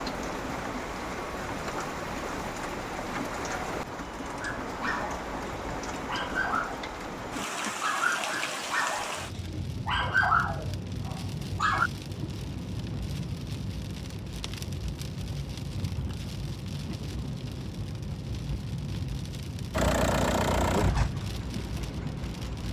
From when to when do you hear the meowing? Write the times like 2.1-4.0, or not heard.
not heard.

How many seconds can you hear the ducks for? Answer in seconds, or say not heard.
not heard.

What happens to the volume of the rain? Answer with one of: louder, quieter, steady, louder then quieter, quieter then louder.
steady.